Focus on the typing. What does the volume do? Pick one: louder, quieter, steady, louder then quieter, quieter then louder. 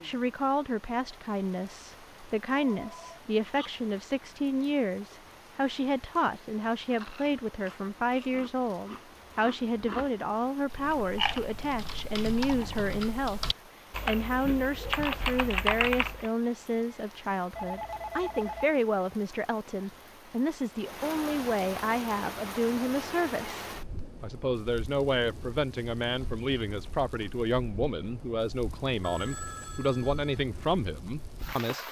louder.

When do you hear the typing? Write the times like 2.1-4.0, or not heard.
10.7-16.3.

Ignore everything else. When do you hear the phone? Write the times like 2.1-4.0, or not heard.
2.7-3.7, 17.5-18.6, 29.0-30.2.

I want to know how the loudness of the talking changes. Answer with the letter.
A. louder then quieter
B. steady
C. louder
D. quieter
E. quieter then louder
B.